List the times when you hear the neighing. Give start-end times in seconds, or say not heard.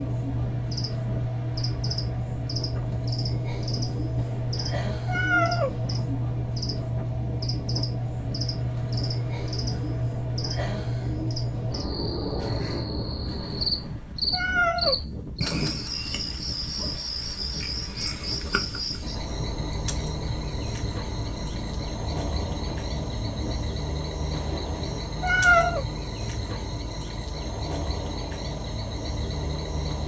not heard.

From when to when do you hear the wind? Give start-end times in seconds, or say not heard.
0.0-23.7.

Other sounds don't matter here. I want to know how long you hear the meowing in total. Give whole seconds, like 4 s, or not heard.
5 s.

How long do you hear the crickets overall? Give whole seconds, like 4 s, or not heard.
30 s.